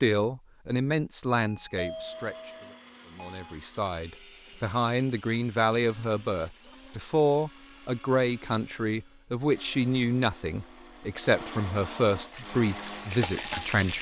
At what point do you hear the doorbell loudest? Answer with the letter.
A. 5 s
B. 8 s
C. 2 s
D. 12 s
C.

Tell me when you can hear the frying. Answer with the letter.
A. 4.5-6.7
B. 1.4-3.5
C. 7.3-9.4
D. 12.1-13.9
D.